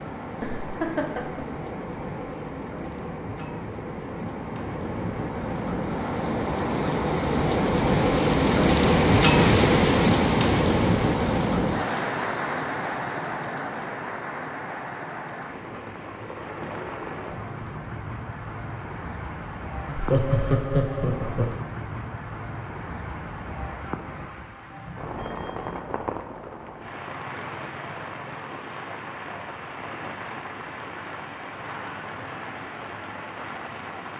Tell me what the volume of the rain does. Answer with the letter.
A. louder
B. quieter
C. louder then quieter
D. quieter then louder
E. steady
C.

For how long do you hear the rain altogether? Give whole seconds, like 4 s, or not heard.
34 s.